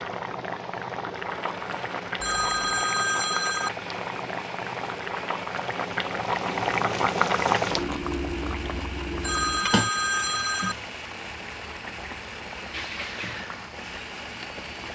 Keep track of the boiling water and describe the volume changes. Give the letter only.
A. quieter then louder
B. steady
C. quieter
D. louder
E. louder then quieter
E.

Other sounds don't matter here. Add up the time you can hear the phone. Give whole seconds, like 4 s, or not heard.
3 s.